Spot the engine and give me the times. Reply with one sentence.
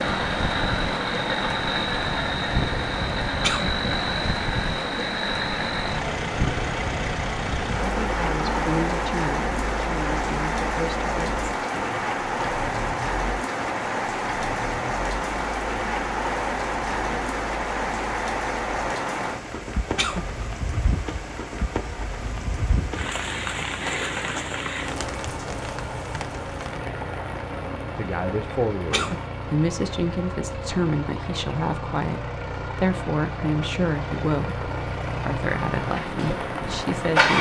You can hear the engine from 0.0 to 37.3 s.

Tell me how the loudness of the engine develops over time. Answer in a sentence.
The volume of the engine goes down, then up.